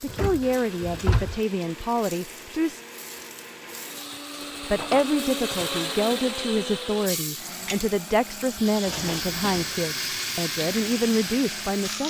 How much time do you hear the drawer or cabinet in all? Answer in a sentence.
The drawer or cabinet can be heard for 3 seconds in total.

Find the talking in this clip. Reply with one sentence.
You can hear the talking from 0.0 to 2.8 s and from 4.6 to 12.0 s.